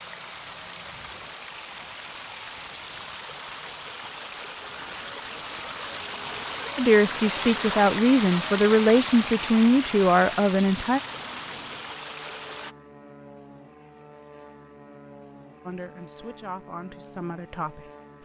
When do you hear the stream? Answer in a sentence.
You can hear the stream from 0.0 to 12.8 s.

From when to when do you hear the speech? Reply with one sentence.
The speech can be heard from 6.8 to 11.0 s and from 15.7 to 18.2 s.